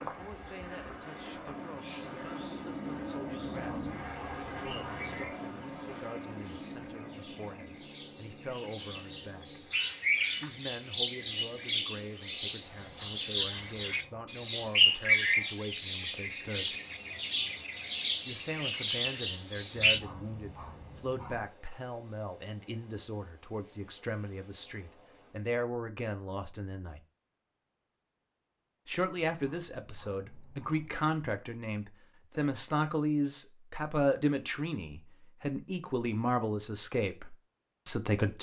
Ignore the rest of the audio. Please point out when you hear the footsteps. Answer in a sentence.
The footsteps can't be heard in this clip.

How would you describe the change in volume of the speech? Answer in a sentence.
The loudness of the speech goes up.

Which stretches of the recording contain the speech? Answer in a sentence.
The speech can be heard from 0.1 to 9.6 s, from 10.4 to 16.8 s, from 18.2 to 27.0 s and from 28.9 to 38.3 s.